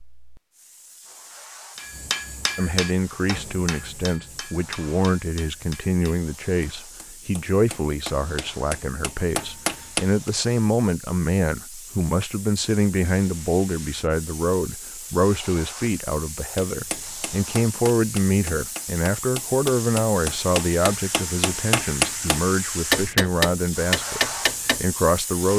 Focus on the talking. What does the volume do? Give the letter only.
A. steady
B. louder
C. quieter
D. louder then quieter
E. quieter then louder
A.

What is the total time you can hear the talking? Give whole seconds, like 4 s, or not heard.
23 s.